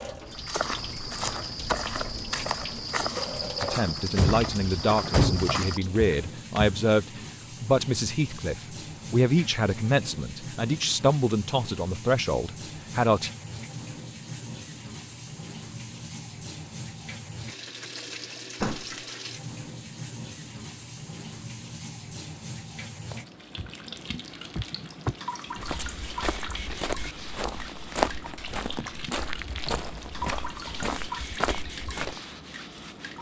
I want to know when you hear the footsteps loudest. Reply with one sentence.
The loudest moment of the footsteps is at 28 seconds.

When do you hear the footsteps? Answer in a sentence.
The footsteps can be heard from 0.2 to 6.8 s and from 25.6 to 32.2 s.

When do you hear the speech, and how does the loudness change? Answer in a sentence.
The speech can be heard from 3.6 to 13.3 s, at a steady volume.